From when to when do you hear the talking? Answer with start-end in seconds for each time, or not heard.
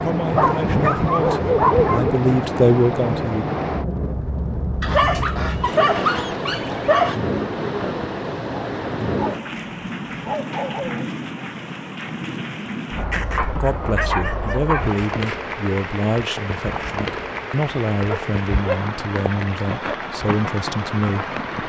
0.0-3.5, 13.5-21.4.